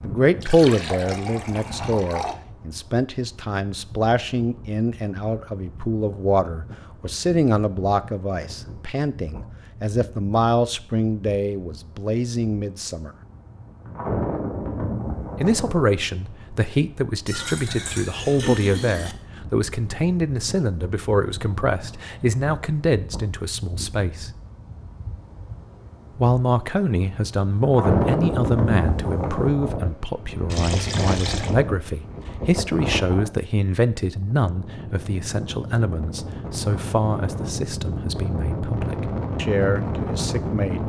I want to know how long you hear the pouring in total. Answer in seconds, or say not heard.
5 s.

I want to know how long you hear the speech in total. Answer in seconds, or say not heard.
37 s.